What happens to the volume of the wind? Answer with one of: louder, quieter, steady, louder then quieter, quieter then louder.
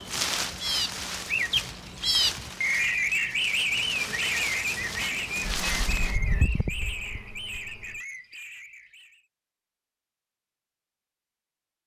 quieter then louder.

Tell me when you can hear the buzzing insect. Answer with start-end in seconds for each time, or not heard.
3.6-8.0.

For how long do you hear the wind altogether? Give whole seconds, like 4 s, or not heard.
6 s.